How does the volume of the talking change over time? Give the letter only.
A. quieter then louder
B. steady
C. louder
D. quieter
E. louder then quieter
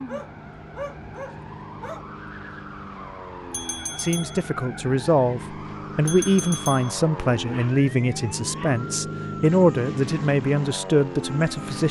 B.